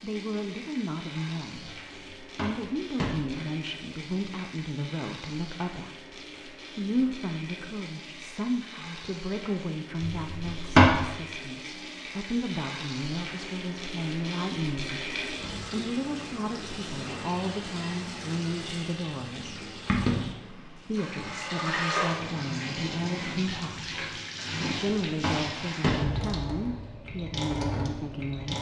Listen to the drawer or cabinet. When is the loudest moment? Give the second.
11 s.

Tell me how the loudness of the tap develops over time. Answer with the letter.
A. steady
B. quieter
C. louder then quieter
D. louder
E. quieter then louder
D.